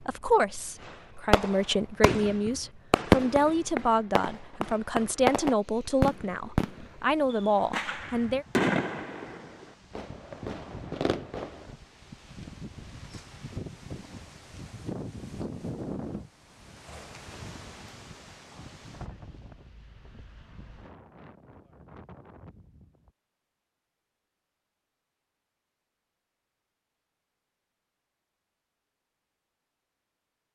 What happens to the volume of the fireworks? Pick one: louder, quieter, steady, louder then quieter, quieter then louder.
quieter.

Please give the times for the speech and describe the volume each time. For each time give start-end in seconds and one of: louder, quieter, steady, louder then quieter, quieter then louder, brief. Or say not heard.
0.0-8.4 steady.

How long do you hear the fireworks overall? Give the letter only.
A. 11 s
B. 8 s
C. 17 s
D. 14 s
A.